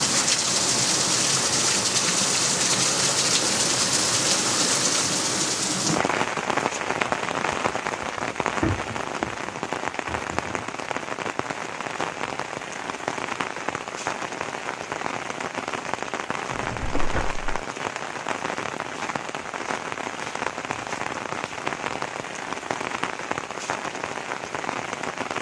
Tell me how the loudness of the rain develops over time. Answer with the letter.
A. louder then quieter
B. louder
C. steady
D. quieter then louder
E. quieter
E.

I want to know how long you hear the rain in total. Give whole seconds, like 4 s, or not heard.
25 s.